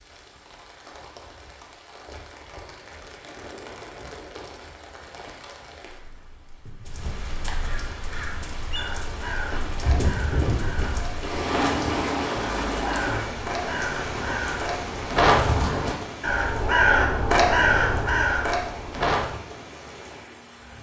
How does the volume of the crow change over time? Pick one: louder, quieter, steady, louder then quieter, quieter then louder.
louder.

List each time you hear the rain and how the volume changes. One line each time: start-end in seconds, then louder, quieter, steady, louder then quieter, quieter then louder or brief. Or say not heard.
0.0-20.7 louder then quieter.